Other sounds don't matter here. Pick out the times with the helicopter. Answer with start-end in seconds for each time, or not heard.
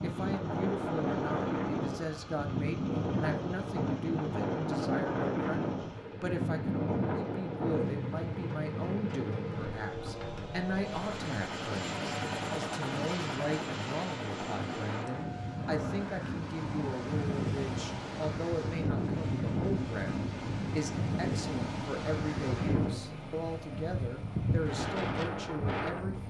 0.0-26.2.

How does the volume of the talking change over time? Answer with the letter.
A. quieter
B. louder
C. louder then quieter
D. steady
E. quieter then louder
D.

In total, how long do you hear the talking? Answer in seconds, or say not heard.
26 s.